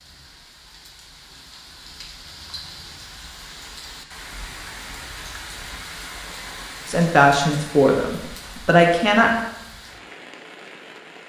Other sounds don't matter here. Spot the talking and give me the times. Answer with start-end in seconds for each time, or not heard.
6.8-9.3.